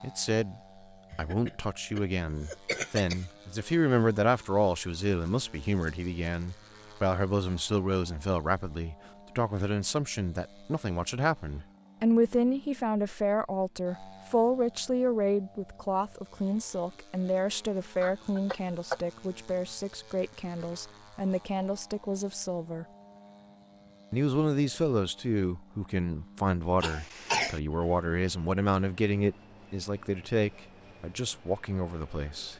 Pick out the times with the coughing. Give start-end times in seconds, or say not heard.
1.1-3.2, 18.0-19.0, 26.8-27.6.